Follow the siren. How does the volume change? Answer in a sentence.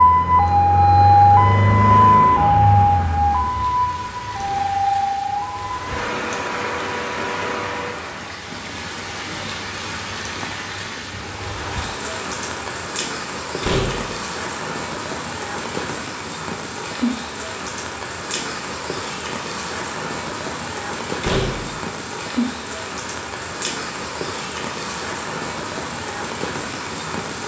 The loudness of the siren goes down.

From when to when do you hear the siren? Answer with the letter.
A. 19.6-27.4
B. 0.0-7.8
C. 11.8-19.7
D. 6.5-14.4
B.